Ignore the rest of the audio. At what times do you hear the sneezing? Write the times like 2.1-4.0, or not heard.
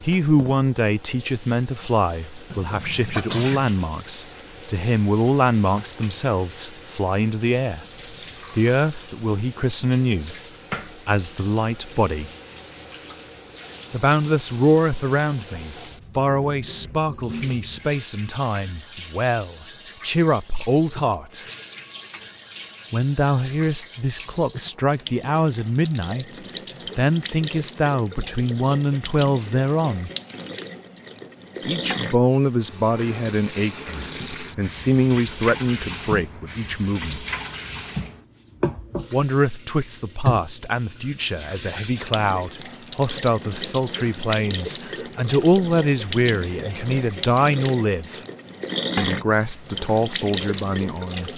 2.5-3.7.